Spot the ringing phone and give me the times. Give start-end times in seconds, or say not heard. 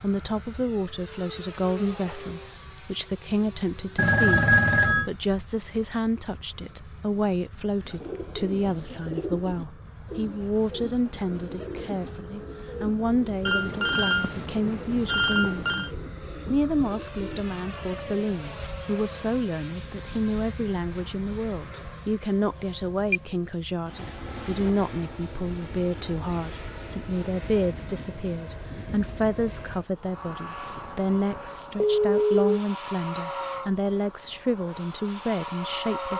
4.0-5.0, 13.4-15.9, 31.9-32.6.